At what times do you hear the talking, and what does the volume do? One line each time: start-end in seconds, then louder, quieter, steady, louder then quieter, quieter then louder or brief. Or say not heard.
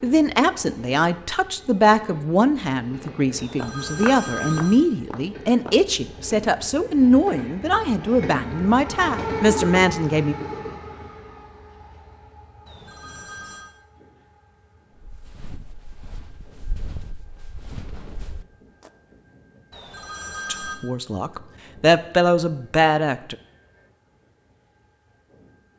0.0-10.3 steady
20.5-23.4 brief.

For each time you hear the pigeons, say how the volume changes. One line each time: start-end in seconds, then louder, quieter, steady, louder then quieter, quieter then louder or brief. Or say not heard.
not heard.